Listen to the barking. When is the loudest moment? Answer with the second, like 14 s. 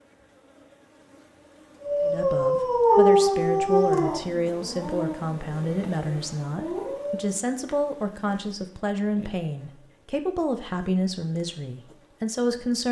3 s.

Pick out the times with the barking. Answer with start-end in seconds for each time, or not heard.
1.8-7.3.